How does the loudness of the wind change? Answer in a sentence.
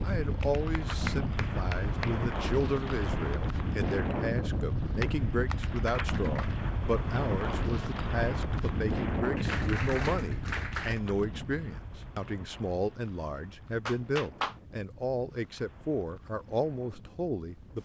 The loudness of the wind goes down.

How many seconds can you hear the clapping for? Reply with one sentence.
The clapping can be heard for 6 seconds in total.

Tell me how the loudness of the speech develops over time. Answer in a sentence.
The volume of the speech stays about the same.